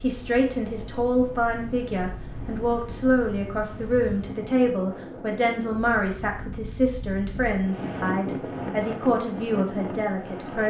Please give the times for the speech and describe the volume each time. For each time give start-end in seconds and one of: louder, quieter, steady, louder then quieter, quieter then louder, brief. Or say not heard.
0.0-10.6 steady.